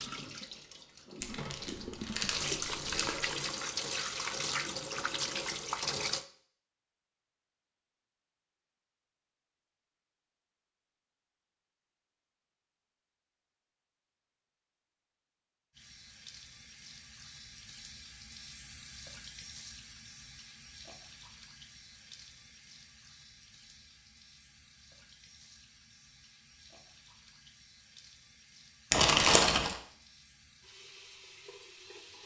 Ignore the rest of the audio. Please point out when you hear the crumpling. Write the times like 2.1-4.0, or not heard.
1.2-3.4, 28.9-29.8.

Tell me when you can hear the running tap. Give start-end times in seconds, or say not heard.
0.0-6.2, 15.7-32.2.